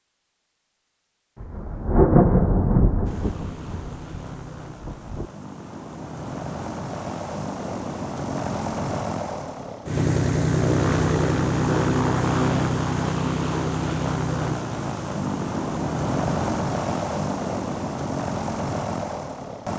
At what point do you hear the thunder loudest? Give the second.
2 s.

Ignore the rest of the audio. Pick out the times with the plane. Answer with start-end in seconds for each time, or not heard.
3.0-19.7.